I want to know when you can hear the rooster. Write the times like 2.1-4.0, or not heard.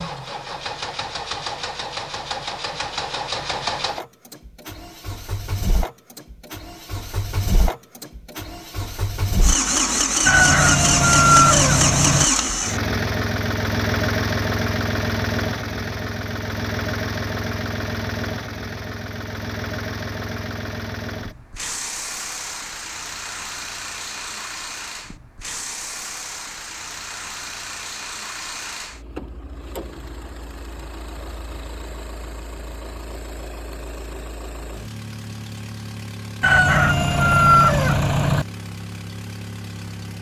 10.2-12.2, 36.4-38.5.